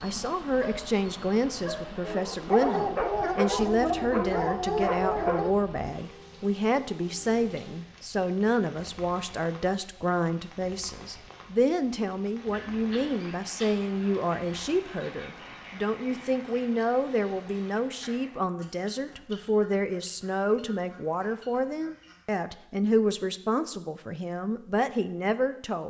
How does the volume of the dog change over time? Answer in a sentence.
The volume of the dog goes up.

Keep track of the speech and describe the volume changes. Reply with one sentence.
The loudness of the speech stays about the same.